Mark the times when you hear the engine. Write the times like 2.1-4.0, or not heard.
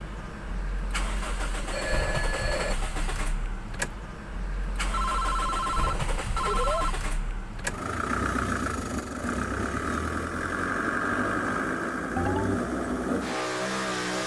0.0-14.2.